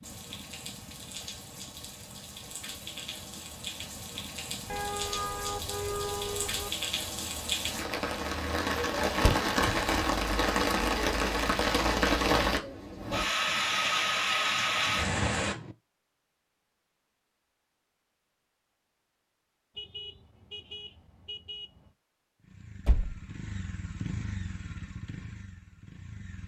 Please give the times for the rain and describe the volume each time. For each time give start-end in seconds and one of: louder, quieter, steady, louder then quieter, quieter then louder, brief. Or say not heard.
0.0-15.6 louder.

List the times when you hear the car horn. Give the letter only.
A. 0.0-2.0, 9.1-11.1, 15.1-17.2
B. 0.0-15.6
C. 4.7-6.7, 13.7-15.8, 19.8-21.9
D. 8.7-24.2
C.